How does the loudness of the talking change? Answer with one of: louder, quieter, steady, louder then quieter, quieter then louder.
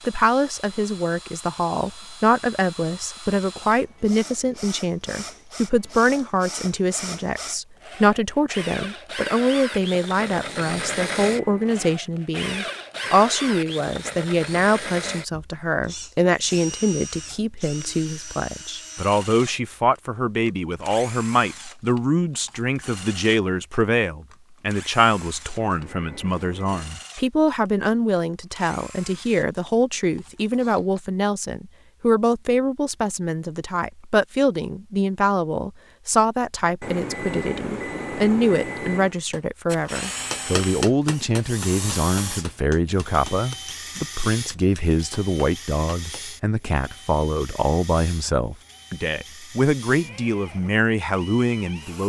steady.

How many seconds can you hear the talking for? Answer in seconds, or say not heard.
52 s.